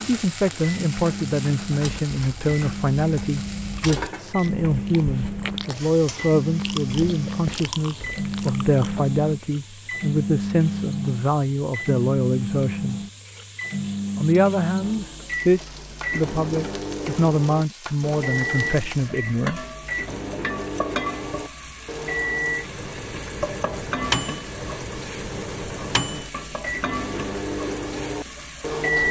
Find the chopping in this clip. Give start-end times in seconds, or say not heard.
not heard.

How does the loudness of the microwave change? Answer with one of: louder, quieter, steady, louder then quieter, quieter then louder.
steady.